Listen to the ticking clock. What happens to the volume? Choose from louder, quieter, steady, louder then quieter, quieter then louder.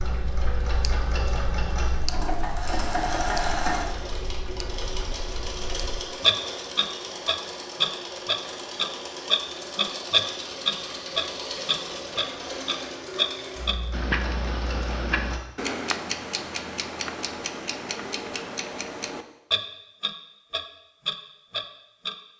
louder then quieter.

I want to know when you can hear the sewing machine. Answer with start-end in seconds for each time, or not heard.
0.0-15.4.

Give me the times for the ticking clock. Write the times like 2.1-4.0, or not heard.
0.0-22.1.